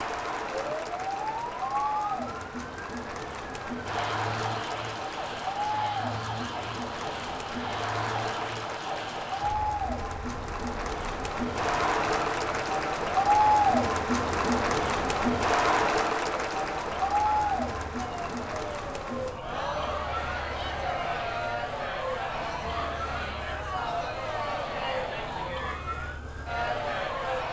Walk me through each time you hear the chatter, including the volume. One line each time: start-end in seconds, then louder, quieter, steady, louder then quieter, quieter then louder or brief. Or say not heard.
0.0-27.4 louder then quieter.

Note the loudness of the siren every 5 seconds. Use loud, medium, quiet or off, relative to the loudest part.
loud, loud, medium, loud, loud, loud.